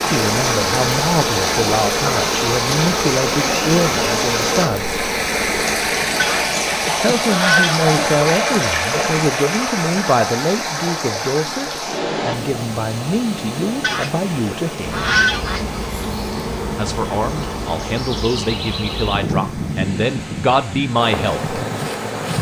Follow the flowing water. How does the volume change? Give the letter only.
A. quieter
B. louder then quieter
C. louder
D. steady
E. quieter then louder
A.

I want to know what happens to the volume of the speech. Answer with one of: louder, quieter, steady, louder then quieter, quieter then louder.
steady.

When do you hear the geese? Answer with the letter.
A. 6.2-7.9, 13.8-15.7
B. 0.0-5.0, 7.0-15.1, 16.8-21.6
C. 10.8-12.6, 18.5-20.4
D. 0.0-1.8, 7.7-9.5
A.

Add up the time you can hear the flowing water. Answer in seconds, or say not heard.
22 s.